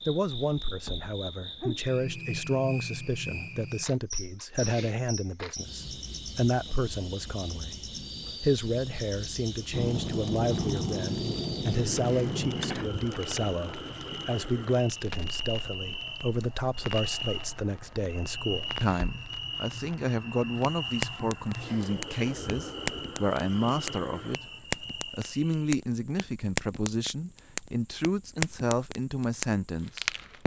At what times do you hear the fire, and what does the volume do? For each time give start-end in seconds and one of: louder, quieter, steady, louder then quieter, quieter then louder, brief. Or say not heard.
9.7-30.4 quieter then louder.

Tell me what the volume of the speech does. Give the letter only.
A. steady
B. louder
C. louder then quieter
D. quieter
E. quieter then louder
A.